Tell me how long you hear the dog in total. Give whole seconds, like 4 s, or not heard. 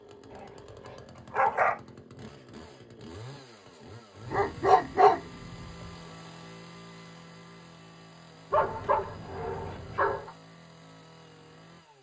5 s.